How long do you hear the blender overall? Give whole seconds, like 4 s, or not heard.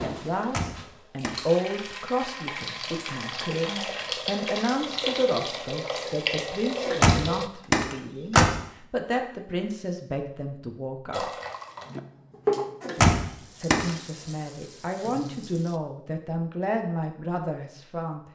not heard.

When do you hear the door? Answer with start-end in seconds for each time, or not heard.
0.3-1.4, 6.8-8.6, 12.8-13.9.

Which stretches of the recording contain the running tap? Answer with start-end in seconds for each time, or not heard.
0.0-7.5, 11.1-15.8.